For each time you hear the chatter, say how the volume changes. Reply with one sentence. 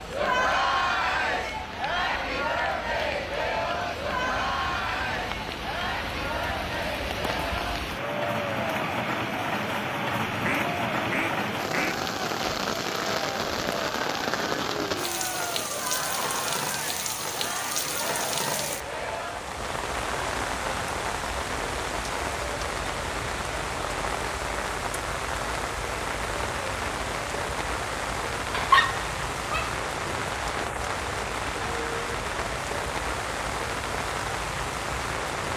The chatter can be heard from 0.0 to 19.4 s, getting quieter.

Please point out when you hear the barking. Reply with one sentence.
You can hear the barking from 28.5 to 29.7 s.